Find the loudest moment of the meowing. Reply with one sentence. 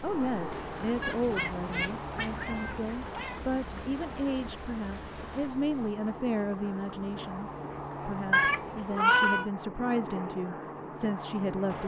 The volume of the meowing peaks at 9 seconds.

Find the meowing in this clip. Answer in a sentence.
The meowing can be heard from 1.0 to 3.5 s and from 8.3 to 9.4 s.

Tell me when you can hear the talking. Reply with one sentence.
You can hear the talking from 0.0 to 11.8 s.